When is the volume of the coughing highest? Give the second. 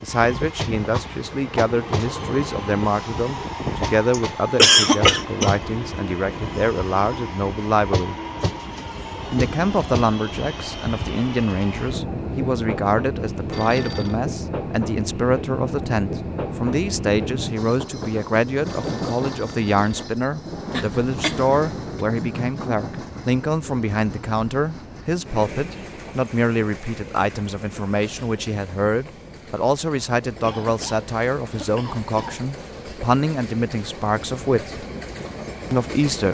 5 s.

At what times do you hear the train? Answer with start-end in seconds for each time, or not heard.
0.0-36.3.